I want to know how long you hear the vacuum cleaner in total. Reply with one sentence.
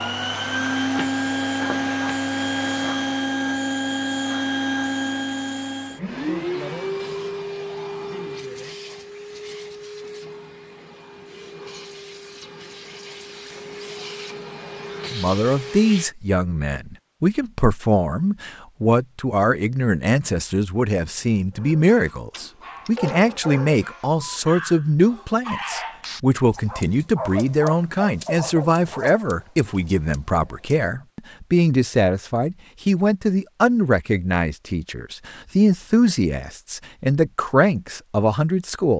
You can hear the vacuum cleaner for 16 seconds altogether.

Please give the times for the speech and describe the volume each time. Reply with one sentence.
The speech can be heard from 15.1 to 38.9 s, at a steady volume.